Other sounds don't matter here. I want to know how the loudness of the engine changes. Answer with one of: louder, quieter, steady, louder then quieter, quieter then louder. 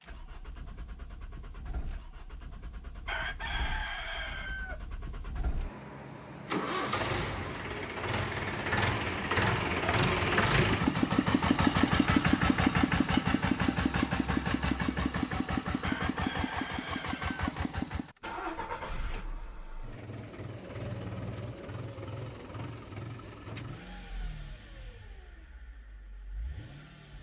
louder then quieter.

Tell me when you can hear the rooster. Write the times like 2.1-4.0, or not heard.
3.0-4.8, 15.8-17.4.